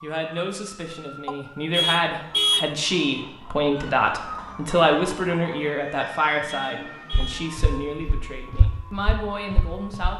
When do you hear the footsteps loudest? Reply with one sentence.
The loudest moment of the footsteps is at 9 seconds.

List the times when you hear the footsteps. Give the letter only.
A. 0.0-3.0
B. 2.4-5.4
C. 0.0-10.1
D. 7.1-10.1
D.